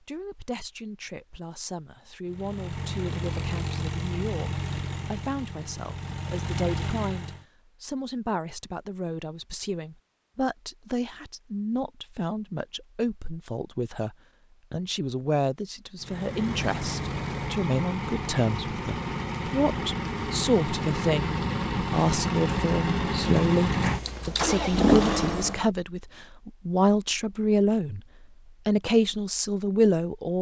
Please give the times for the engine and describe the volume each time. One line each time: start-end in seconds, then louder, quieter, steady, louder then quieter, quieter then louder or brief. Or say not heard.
2.2-7.5 quieter then louder
15.9-25.7 louder.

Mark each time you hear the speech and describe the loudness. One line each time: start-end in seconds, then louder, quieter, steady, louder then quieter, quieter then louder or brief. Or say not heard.
0.0-28.0 louder
28.6-30.3 brief.